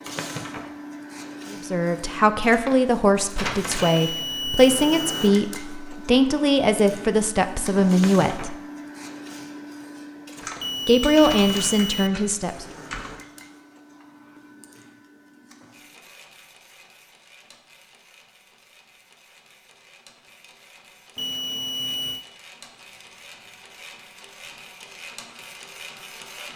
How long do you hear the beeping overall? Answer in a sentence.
You can hear the beeping for 4 seconds altogether.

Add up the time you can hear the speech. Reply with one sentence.
You can hear the speech for 9 seconds altogether.